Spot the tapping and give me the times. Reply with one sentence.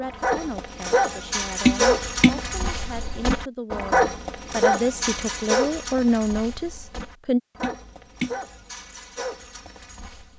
The tapping can be heard from 1.6 to 2.6 s and from 7.6 to 8.7 s.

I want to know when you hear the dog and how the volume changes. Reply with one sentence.
You can hear the dog from 0.0 to 10.3 s, getting quieter.